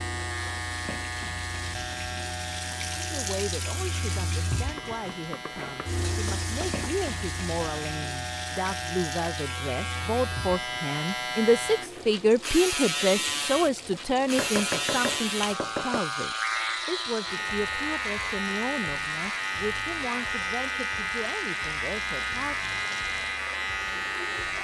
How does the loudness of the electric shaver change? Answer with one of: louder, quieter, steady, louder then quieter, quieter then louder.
louder.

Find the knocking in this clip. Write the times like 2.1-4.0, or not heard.
4.8-6.8, 14.3-16.0.